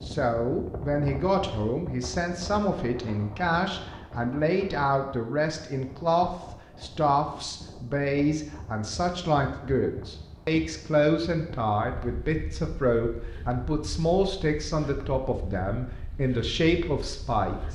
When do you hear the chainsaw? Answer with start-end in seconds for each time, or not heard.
not heard.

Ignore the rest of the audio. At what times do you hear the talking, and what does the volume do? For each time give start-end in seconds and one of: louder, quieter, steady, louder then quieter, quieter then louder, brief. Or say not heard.
0.0-17.6 steady.